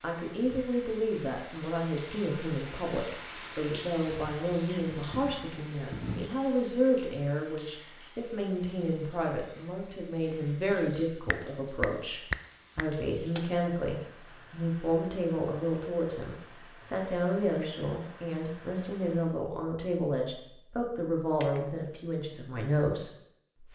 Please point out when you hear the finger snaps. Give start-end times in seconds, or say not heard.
11.2-12.8.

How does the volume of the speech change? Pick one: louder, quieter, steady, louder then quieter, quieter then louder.
steady.